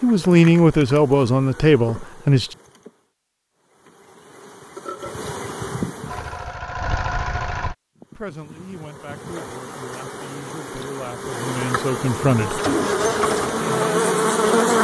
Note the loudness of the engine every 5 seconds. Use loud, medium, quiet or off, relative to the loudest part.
off, loud, loud.